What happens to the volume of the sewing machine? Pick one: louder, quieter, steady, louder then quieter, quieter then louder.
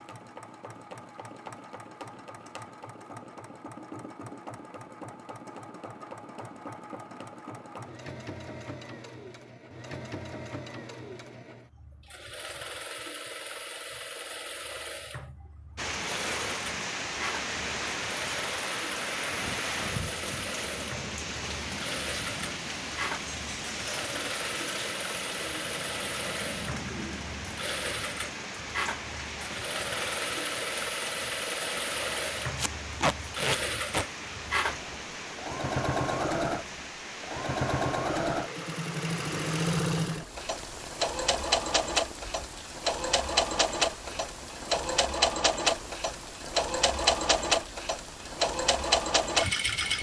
louder.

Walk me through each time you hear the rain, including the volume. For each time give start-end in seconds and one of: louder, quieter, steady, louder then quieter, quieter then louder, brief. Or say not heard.
15.8-49.9 quieter.